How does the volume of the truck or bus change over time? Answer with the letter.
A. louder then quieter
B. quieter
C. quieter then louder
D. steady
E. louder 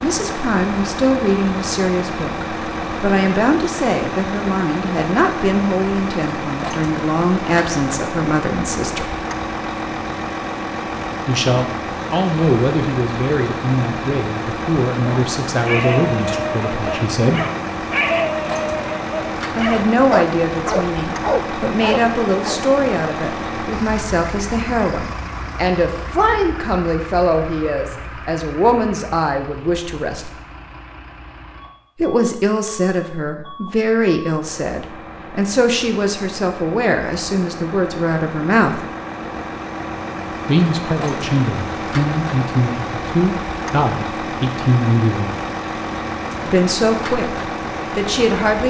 C.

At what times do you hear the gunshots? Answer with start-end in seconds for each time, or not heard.
not heard.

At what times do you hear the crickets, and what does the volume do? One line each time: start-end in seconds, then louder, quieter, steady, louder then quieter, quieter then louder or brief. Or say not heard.
not heard.